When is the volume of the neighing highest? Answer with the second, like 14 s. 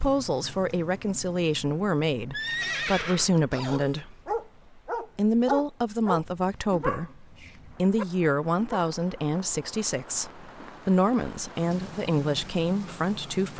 3 s.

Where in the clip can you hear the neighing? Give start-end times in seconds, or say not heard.
2.3-4.0.